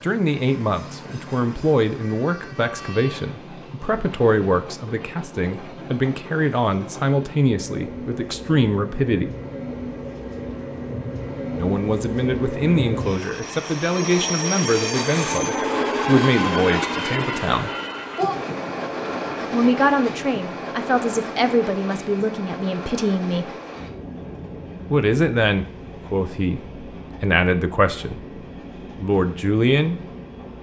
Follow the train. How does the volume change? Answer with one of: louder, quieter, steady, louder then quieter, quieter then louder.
louder then quieter.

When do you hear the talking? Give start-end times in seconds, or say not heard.
0.0-9.3, 11.6-17.7, 19.5-23.5, 24.9-28.2, 29.0-30.0.